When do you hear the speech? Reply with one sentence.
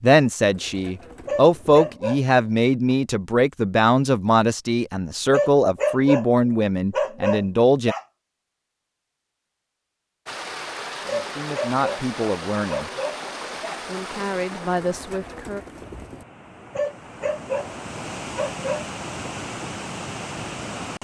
The speech can be heard from 0.0 to 8.0 s, from 11.1 to 12.9 s and from 13.8 to 15.7 s.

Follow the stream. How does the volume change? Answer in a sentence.
The volume of the stream goes down, then up.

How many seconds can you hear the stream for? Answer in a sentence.
The stream can be heard for 11 seconds in total.